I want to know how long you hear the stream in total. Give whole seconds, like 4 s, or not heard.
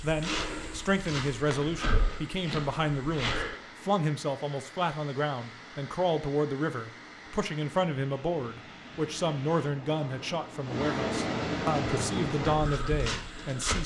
14 s.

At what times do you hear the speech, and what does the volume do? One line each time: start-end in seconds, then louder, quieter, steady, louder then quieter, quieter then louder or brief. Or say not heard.
0.0-13.8 steady.